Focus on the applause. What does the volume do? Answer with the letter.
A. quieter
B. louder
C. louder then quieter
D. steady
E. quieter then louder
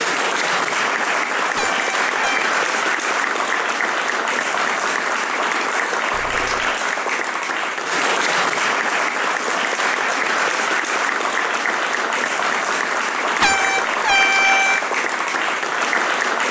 D.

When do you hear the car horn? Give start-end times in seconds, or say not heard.
1.6-2.5, 6.1-6.8, 13.4-14.8.